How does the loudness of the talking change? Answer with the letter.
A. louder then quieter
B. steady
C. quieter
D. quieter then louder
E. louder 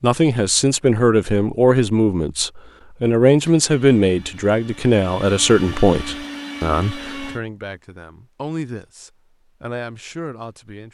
C.